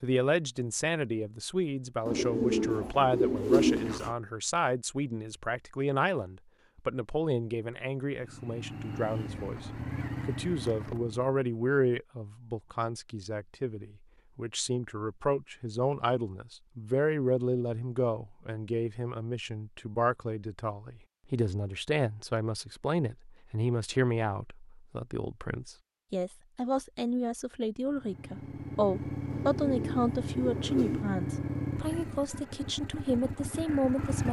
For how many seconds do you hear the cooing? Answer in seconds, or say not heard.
4 s.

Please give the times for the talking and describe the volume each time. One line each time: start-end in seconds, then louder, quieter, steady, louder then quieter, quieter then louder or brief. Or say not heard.
0.0-34.2 steady.